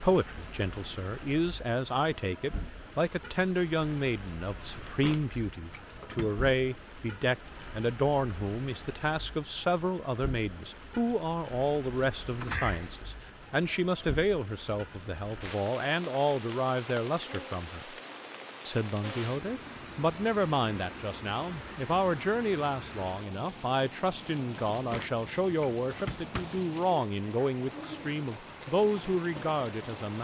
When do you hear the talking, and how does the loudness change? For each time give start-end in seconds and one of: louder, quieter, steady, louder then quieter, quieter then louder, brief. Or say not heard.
0.0-17.9 steady
18.6-30.1 steady.